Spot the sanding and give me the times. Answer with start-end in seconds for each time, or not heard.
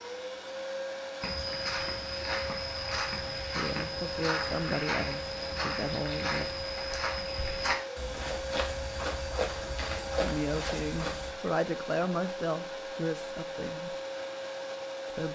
not heard.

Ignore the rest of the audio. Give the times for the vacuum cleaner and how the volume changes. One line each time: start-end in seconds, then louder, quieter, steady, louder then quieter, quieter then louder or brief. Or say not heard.
0.0-15.3 steady.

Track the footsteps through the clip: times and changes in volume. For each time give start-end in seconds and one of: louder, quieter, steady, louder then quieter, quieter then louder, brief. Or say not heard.
1.2-11.3 steady.